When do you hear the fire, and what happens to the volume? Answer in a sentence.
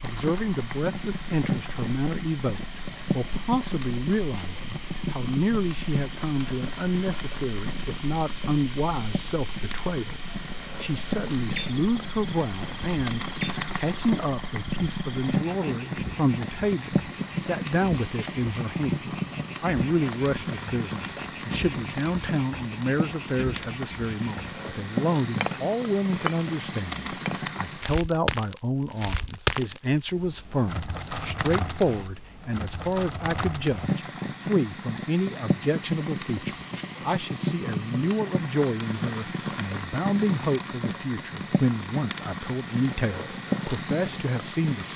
You can hear the fire from 0.0 to 44.9 s, at a steady volume.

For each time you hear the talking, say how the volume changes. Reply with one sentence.
The talking can be heard from 0.0 to 44.9 s, at a steady volume.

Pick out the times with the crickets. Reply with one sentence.
The crickets can be heard from 0.0 to 27.4 s.